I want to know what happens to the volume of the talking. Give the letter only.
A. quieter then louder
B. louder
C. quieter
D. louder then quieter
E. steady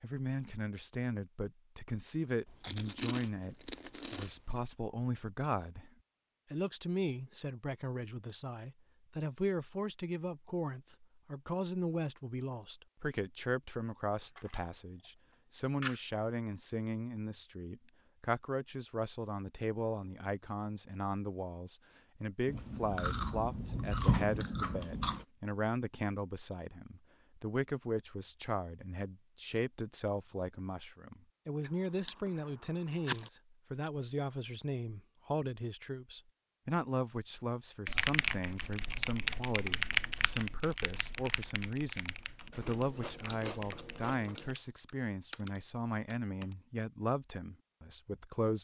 E.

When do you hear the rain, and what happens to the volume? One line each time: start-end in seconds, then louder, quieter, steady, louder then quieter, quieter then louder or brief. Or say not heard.
not heard.